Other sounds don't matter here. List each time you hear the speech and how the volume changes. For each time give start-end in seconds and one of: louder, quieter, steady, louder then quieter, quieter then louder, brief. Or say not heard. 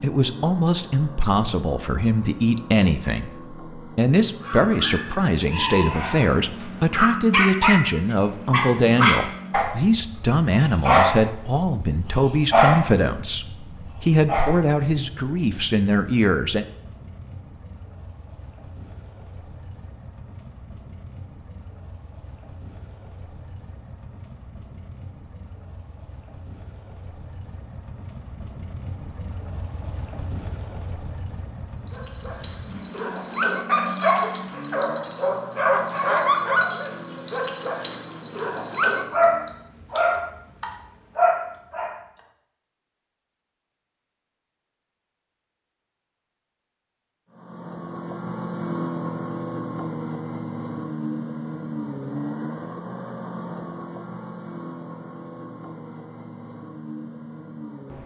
0.0-16.6 steady.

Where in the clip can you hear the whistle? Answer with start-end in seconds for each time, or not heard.
not heard.